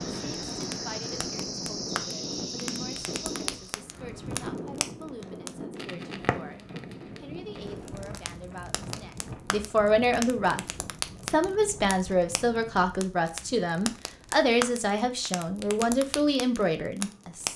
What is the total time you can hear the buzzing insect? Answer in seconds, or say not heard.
4 s.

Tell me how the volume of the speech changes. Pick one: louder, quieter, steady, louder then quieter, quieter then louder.
louder.